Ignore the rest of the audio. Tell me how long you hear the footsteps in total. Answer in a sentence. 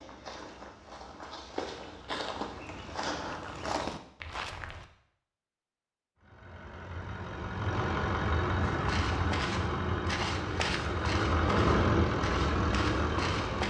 You can hear the footsteps for 10 seconds altogether.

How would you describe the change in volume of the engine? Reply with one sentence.
The volume of the engine goes up.